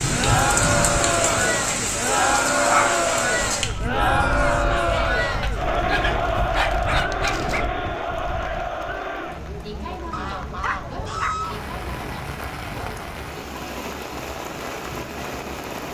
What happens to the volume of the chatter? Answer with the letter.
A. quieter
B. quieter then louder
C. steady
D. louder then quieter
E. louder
A.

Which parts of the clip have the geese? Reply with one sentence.
You can hear the geese from 10.1 to 11.7 s.